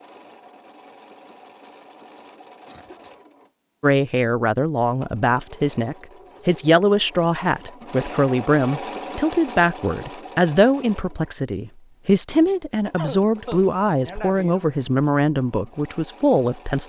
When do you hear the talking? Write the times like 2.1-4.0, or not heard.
3.8-16.8.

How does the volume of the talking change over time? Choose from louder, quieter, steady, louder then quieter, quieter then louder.
steady.